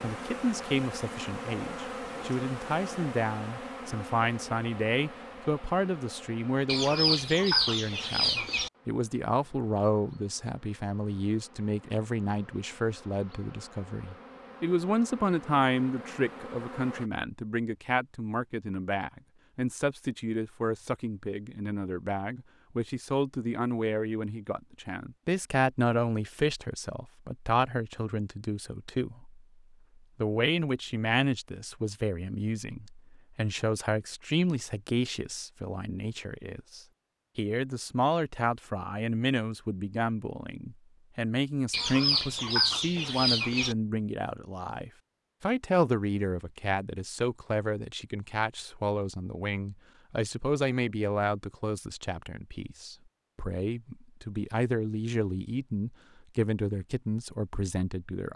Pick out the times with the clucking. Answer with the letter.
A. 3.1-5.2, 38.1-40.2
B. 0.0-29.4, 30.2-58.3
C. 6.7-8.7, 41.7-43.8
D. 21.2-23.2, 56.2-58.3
C.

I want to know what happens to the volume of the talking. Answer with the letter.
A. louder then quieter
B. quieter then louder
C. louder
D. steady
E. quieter
D.